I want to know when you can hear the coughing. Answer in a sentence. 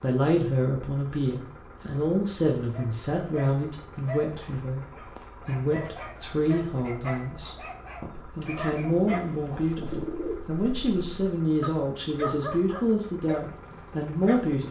The coughing can't be heard in this clip.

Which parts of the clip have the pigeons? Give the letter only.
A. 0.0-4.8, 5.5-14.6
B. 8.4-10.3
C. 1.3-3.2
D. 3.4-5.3
B.